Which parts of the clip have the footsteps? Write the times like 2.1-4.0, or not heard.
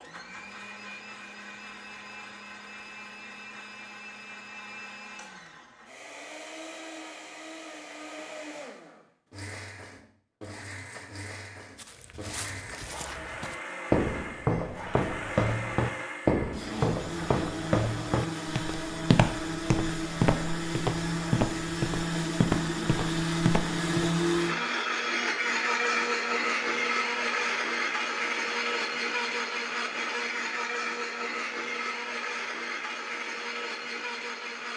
11.8-24.1.